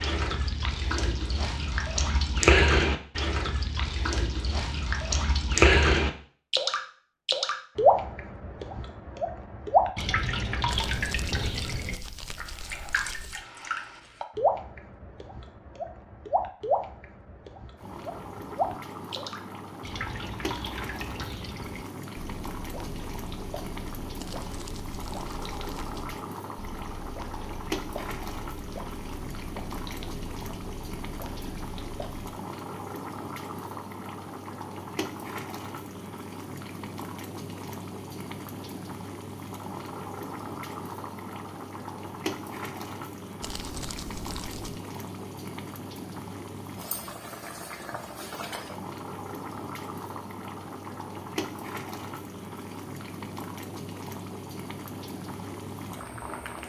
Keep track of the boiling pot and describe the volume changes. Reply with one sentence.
The volume of the boiling pot stays about the same.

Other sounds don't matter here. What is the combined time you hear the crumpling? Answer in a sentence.
The crumpling can be heard for 6 seconds in total.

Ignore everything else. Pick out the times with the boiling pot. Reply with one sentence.
The boiling pot can be heard from 17.8 to 56.6 s.